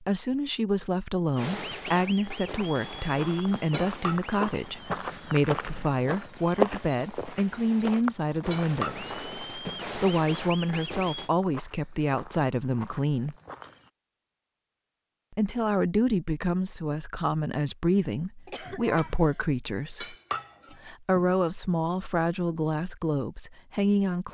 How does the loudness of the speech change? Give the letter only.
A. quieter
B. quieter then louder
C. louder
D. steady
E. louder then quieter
D.